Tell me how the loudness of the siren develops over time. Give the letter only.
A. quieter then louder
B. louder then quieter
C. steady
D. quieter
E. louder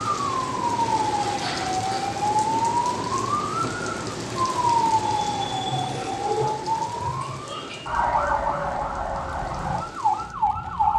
C.